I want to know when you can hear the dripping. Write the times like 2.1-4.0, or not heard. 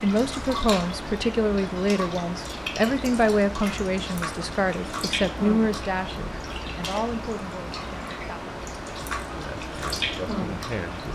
0.0-11.1.